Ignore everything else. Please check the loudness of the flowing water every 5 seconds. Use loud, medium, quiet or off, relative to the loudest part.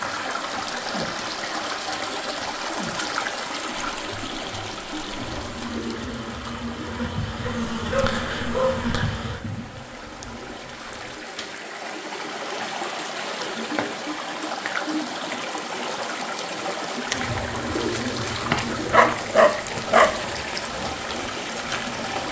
loud, medium, loud, loud, loud.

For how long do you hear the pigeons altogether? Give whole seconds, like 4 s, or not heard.
4 s.